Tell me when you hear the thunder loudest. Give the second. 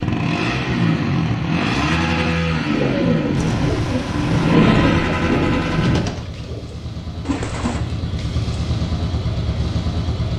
5 s.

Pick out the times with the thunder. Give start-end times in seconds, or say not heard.
3.4-6.2.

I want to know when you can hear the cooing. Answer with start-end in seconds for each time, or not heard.
2.6-7.8.